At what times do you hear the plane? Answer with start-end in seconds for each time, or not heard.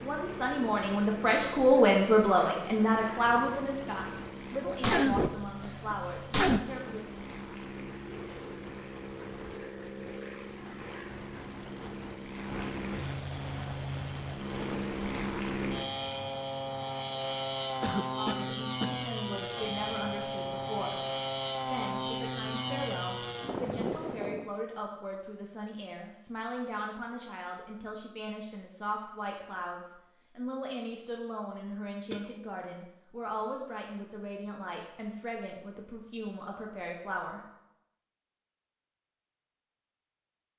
0.0-24.5.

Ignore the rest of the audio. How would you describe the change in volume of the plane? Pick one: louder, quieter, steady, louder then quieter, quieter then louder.
louder.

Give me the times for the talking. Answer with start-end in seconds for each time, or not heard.
0.0-7.0, 18.1-21.0, 21.6-37.4.